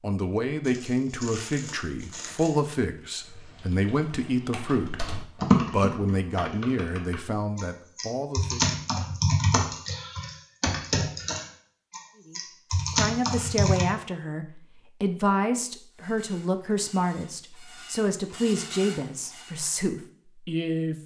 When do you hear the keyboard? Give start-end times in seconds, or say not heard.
2.1-13.8.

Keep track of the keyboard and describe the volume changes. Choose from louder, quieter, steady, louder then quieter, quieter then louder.
louder.